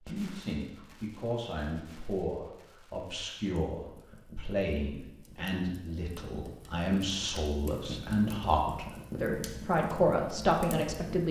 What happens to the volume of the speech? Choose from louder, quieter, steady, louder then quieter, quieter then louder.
louder.